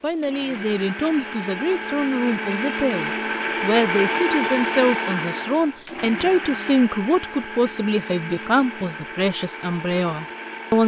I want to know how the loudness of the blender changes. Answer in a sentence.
The loudness of the blender goes up, then down.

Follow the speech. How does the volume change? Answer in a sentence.
The volume of the speech stays about the same.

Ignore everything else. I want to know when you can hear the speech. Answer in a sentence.
You can hear the speech from 0.0 to 10.8 s.